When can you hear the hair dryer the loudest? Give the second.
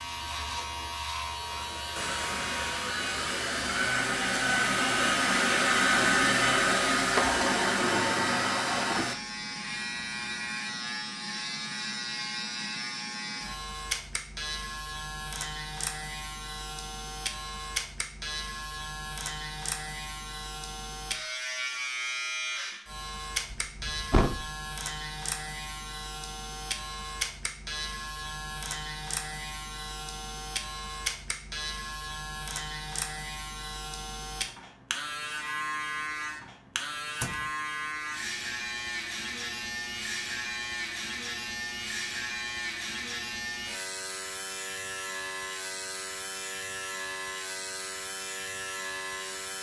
6 s.